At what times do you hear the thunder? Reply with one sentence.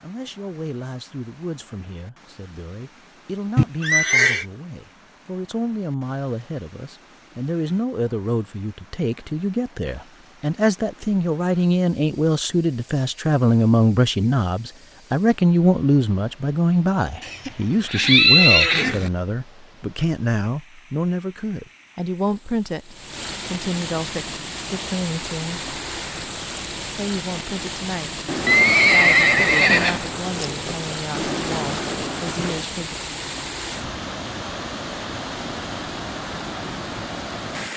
The thunder can be heard from 28.2 to 32.6 s.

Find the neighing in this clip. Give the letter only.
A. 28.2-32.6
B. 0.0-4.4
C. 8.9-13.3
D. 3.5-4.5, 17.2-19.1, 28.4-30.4
D.